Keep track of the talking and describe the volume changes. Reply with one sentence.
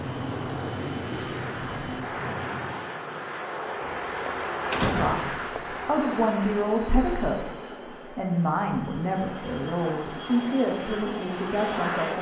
The loudness of the talking stays about the same.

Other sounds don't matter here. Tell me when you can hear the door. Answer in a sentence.
The door can be heard from 3.8 to 5.9 s.